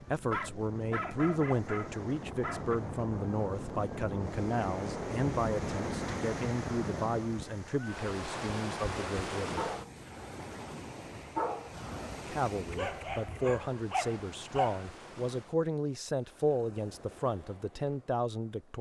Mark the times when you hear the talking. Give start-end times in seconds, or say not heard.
0.1-9.7, 12.2-18.7.